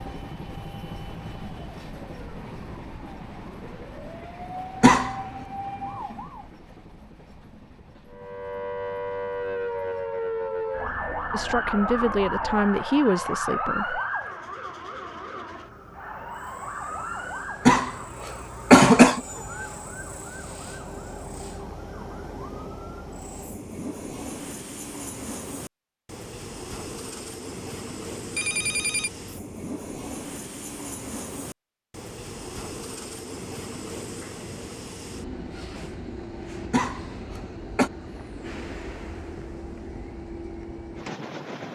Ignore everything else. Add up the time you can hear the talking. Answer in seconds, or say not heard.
3 s.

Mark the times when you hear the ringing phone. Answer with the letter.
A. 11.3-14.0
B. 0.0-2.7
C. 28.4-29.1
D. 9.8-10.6
C.